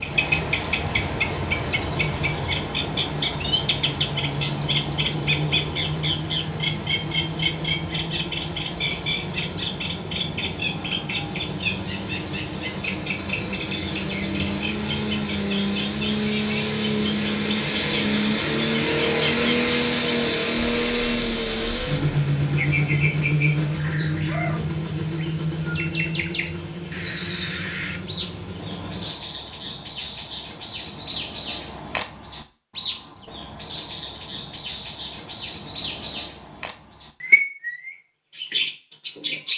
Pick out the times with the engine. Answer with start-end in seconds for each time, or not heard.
0.0-29.1.